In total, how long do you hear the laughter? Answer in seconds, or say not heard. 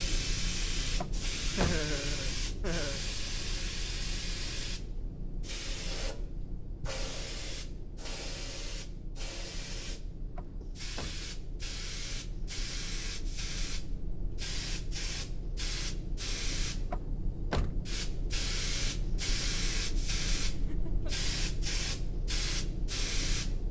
2 s.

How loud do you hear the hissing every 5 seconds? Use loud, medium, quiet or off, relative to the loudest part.
loud, medium, medium, loud, loud.